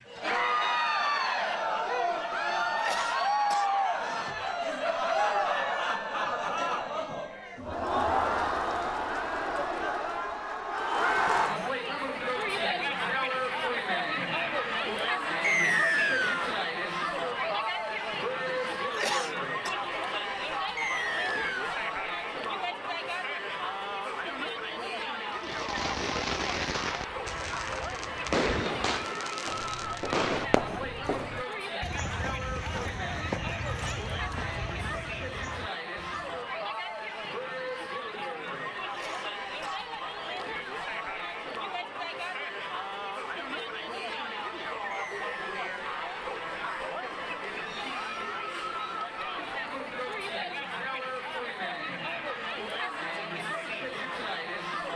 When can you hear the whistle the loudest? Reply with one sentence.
The loudest moment of the whistle is at 16 seconds.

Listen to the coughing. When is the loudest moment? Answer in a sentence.
The loudest moment of the coughing is at 19 seconds.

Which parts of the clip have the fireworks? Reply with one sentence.
You can hear the fireworks from 25.4 to 31.0 s.